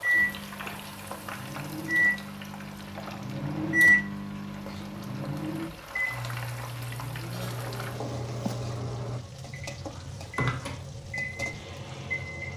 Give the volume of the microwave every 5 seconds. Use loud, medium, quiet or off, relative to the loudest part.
loud, medium, medium.